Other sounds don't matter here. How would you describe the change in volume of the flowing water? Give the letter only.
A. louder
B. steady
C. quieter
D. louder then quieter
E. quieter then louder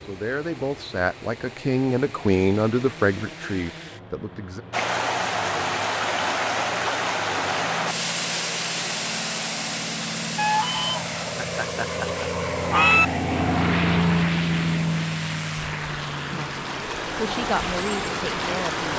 E.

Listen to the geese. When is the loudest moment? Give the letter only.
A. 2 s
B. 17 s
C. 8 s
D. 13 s
D.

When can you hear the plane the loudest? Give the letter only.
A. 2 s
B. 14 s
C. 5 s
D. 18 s
B.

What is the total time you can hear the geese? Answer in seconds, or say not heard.
3 s.